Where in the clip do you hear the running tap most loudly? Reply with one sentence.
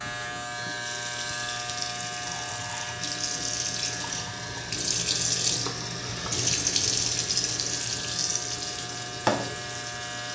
The loudest moment of the running tap is at 7 seconds.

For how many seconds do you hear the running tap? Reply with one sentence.
You can hear the running tap for 10 seconds altogether.